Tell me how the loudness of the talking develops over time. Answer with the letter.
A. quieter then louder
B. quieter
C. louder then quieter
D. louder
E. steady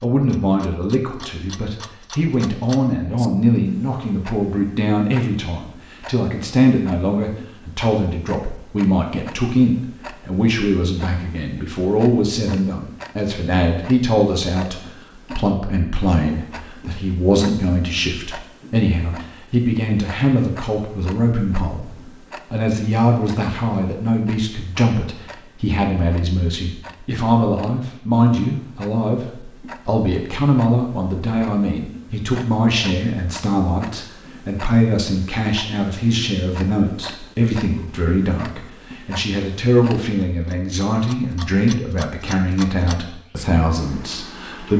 E.